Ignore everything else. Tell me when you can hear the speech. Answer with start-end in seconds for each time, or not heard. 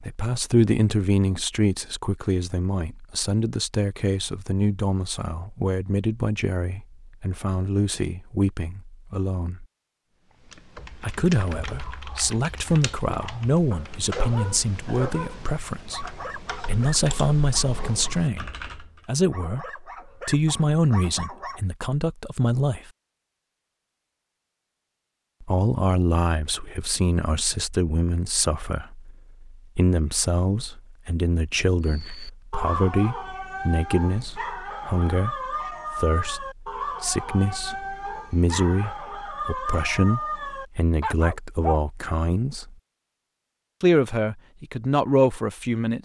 0.0-9.7, 11.0-22.9, 25.4-42.8, 43.8-46.0.